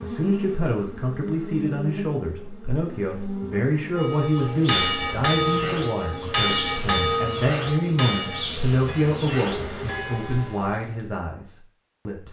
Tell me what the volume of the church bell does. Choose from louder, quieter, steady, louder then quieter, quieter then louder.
quieter.